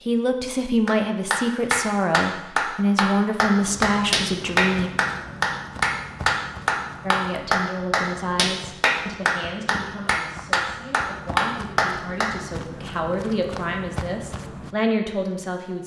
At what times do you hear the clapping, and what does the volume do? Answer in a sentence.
The clapping can be heard from 0.8 to 12.3 s, at a steady volume.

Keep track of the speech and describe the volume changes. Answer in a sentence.
The loudness of the speech goes down, then up.